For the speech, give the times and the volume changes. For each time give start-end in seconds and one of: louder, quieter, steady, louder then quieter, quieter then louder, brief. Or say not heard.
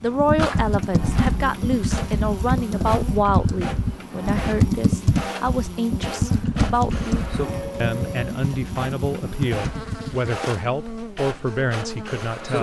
0.0-12.5 steady.